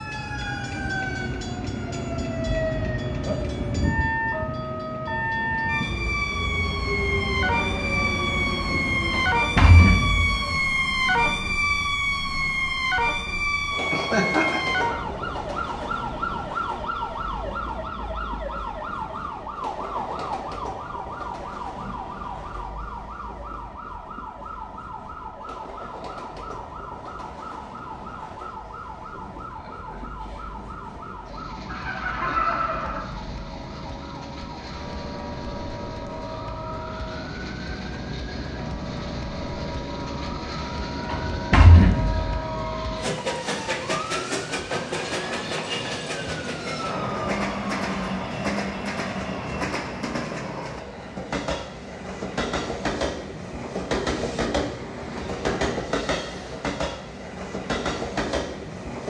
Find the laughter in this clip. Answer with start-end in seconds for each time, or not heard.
13.9-14.7, 31.6-33.0.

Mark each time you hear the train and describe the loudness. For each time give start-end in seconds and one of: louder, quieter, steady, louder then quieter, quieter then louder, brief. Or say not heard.
0.0-59.0 quieter then louder.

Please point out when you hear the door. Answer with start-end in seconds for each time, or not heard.
9.1-10.3, 41.1-42.2.